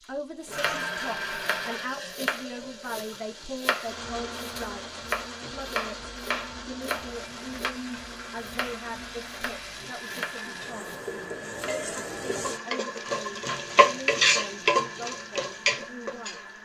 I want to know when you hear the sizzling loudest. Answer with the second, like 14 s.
14 s.